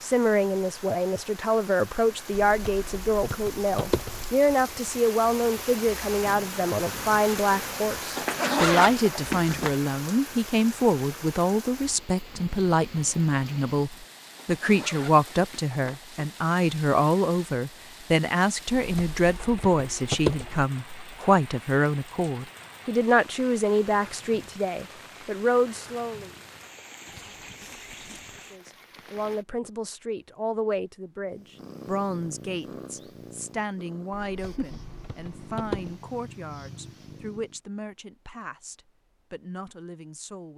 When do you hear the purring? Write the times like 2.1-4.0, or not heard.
31.2-37.6.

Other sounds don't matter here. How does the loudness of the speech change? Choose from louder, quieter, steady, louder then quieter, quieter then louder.
quieter.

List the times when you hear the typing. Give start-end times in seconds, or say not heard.
2.3-4.3, 18.6-20.6, 34.1-36.0.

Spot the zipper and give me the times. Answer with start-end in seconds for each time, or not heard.
8.2-9.8, 14.3-16.3, 27.1-28.4.